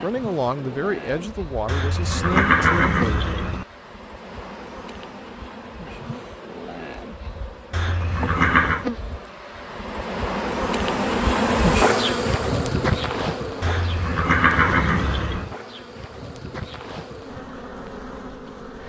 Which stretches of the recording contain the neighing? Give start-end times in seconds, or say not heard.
1.6-3.6, 7.7-8.8, 13.6-15.5.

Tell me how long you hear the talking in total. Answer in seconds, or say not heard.
3 s.